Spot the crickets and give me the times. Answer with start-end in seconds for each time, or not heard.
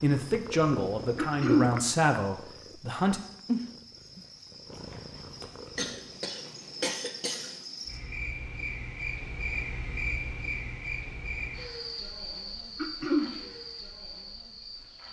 0.0-15.0.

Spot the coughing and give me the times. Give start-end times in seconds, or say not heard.
1.1-1.7, 5.8-7.5, 12.8-13.3.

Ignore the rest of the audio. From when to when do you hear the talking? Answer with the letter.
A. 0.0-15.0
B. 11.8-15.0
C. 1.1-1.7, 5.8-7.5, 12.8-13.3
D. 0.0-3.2
D.